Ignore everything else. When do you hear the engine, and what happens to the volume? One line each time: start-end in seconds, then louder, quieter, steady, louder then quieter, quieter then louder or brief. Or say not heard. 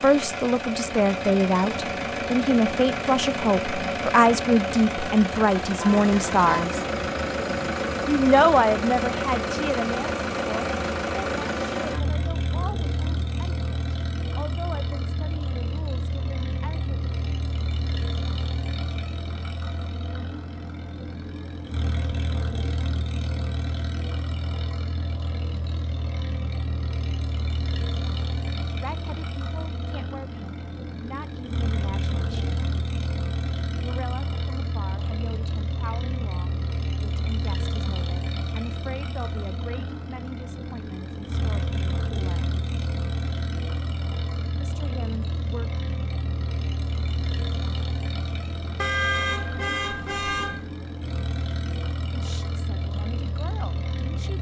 0.0-54.3 quieter.